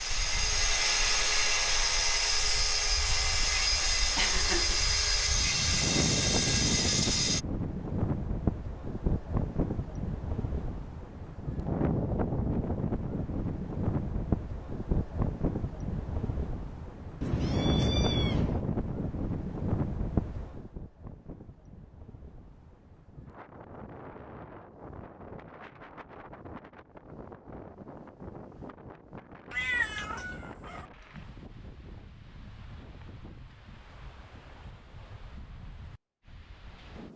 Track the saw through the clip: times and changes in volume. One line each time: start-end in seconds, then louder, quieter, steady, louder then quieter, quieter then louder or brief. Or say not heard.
0.0-7.5 steady.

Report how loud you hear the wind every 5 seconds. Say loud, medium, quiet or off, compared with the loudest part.
quiet, loud, loud, loud, medium, quiet, quiet, quiet.